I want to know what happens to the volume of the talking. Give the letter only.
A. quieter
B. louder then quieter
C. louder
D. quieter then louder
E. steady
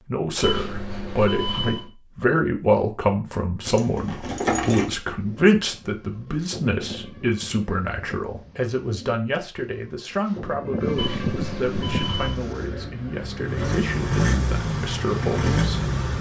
A.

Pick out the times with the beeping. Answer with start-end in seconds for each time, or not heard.
0.4-1.9, 10.9-12.4.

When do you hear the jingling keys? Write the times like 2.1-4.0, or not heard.
3.6-4.9.